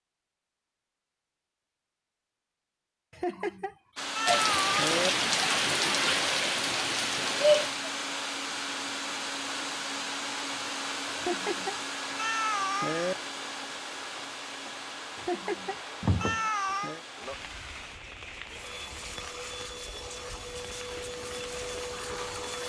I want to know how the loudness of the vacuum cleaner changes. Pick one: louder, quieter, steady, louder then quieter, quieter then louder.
quieter then louder.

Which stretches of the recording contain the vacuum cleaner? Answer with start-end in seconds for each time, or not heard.
4.0-22.6.